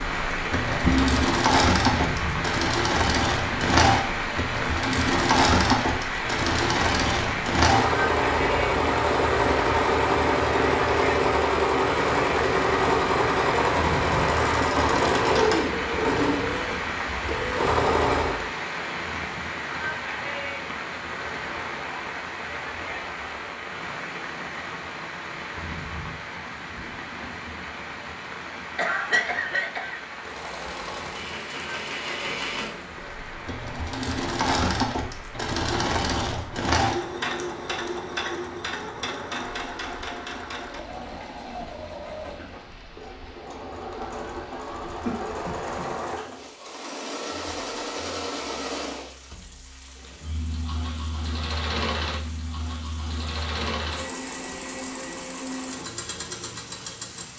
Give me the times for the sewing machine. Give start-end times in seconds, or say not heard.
0.0-18.4, 30.1-57.3.